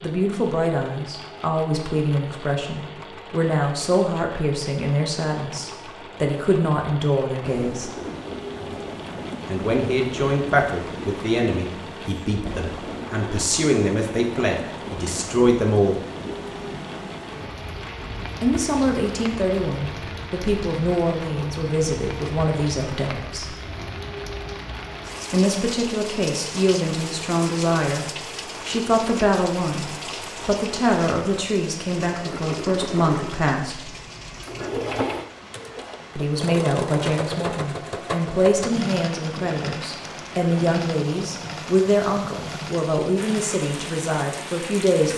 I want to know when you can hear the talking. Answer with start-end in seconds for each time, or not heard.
0.0-8.0, 9.4-16.0, 18.4-23.6, 25.3-28.1, 28.6-33.9, 36.1-45.1.